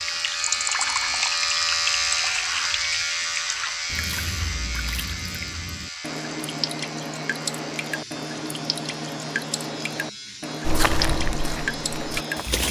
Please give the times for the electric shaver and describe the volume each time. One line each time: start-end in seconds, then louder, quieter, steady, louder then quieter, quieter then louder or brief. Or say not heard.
0.0-12.5 quieter.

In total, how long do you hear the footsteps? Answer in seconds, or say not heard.
2 s.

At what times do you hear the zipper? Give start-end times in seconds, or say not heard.
not heard.